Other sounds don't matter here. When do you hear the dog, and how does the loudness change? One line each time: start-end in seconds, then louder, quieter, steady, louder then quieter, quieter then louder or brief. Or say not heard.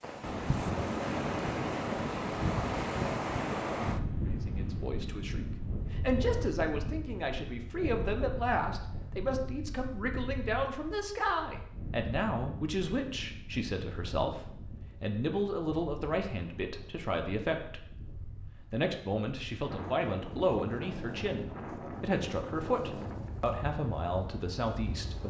not heard.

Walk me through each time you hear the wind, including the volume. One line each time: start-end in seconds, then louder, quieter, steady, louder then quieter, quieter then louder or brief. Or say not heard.
0.0-25.2 quieter then louder.